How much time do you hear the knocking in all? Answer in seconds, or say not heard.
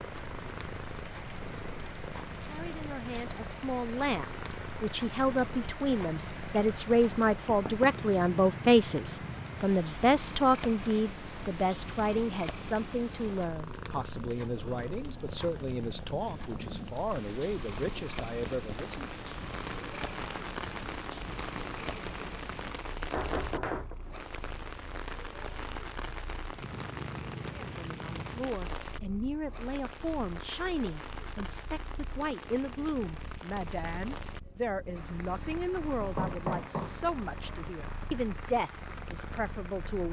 2 s.